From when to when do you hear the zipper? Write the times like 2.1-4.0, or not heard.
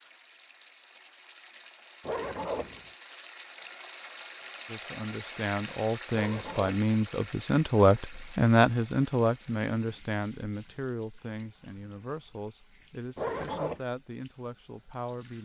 2.0-2.8, 6.1-6.8, 13.2-13.8.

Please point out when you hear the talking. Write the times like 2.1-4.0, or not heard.
4.7-15.3.